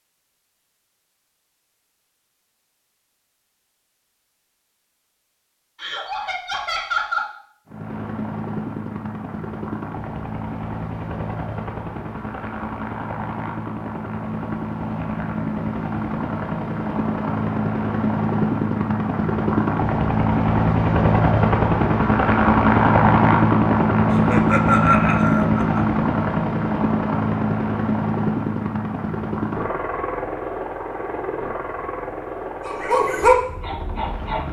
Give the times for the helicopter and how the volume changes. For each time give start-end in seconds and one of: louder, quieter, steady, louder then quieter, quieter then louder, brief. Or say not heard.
7.7-34.4 louder then quieter.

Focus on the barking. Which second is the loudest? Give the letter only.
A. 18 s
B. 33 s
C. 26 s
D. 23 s
B.